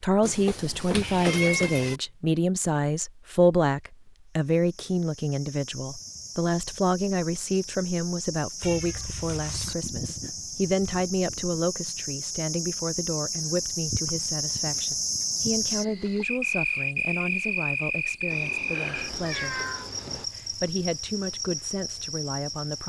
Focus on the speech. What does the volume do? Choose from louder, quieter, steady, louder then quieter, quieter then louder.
quieter.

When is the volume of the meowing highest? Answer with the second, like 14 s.
1 s.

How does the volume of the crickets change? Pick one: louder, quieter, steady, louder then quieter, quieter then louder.
louder then quieter.